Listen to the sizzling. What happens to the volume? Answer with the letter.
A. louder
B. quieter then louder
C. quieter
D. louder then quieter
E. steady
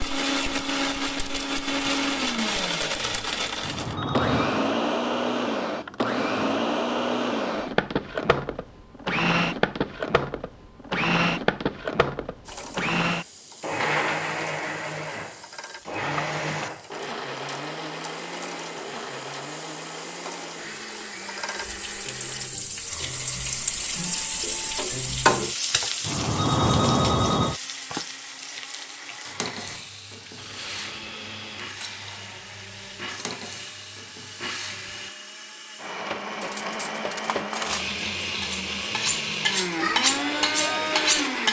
D.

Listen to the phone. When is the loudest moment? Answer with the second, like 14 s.
27 s.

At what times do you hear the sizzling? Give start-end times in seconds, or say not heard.
12.4-35.1.